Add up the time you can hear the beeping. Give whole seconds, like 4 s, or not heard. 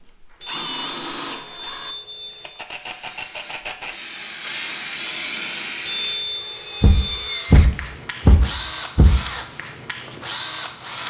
4 s.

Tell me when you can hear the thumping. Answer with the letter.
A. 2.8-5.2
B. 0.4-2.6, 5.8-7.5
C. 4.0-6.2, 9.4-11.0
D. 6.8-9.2
D.